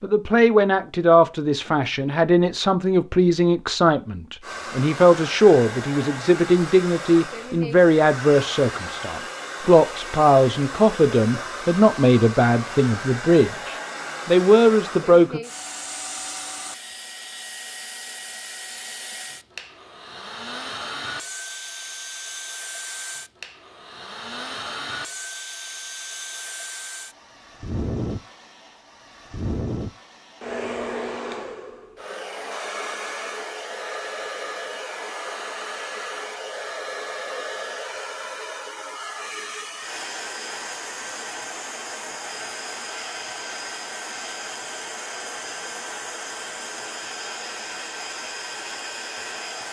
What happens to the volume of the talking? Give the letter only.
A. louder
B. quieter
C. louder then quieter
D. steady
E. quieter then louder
D.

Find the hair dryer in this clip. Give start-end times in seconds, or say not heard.
4.4-49.6.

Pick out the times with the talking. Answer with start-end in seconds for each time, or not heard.
0.0-15.4.